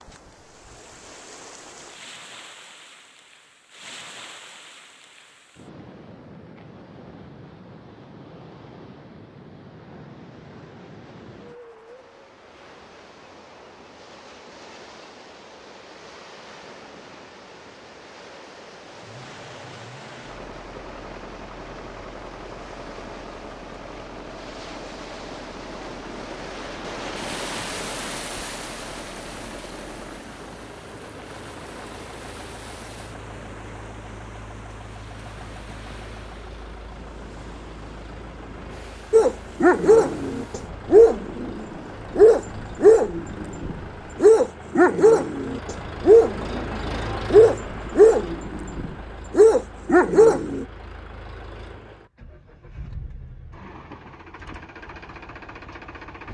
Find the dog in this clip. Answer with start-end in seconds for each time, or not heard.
39.1-50.6.